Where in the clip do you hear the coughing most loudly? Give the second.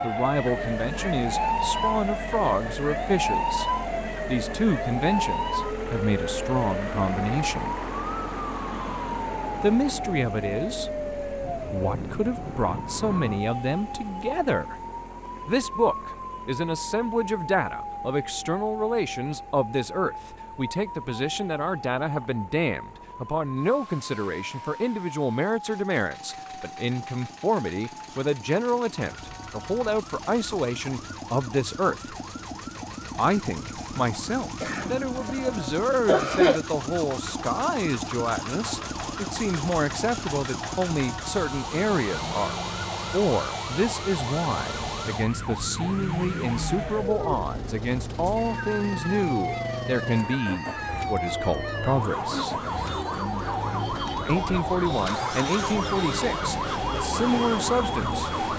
36 s.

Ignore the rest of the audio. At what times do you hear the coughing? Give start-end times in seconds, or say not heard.
34.6-36.6.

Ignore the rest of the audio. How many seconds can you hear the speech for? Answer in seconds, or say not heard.
53 s.